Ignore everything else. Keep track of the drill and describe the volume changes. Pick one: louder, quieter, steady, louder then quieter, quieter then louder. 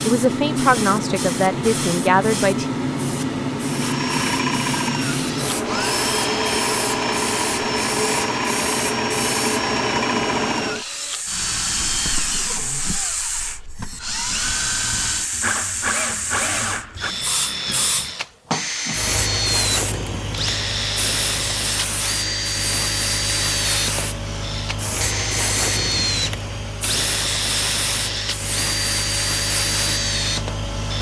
steady.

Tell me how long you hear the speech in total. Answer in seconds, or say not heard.
3 s.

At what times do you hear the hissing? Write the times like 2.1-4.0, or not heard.
0.0-30.9.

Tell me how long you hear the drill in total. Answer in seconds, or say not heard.
27 s.